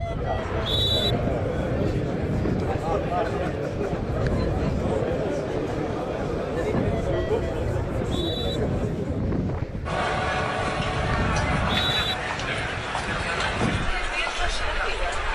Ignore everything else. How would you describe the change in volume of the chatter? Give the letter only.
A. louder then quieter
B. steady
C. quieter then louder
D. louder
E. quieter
B.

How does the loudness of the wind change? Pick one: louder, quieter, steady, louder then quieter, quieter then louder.
steady.